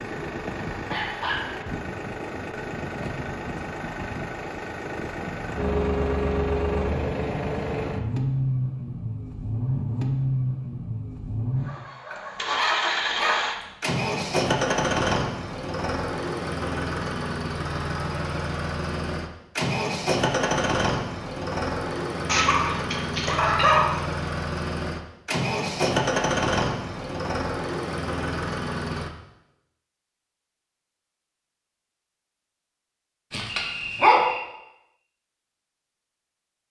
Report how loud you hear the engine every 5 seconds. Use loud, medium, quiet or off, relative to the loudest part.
medium, loud, loud, loud, loud, loud, off, off.